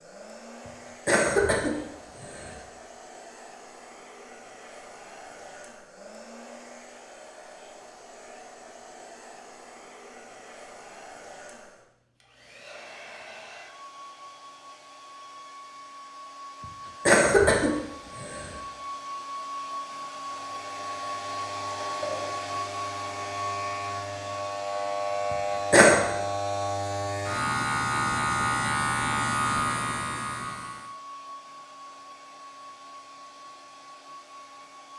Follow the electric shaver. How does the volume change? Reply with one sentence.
The volume of the electric shaver goes up.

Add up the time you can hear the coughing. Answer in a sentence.
The coughing can be heard for 4 seconds in total.